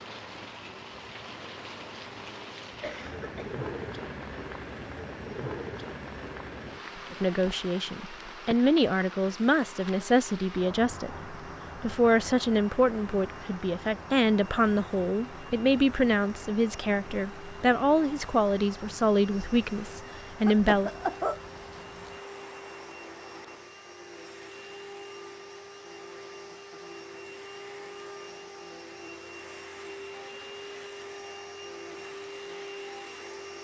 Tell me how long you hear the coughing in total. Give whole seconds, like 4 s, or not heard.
2 s.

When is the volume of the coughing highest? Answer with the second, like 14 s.
21 s.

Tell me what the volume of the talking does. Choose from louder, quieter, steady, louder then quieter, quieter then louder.
steady.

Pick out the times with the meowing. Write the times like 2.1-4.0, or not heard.
not heard.